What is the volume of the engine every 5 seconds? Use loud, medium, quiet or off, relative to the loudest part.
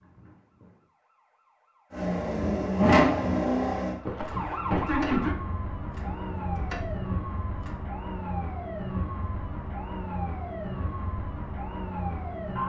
loud, quiet, off.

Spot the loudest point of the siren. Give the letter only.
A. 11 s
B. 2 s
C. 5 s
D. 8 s
C.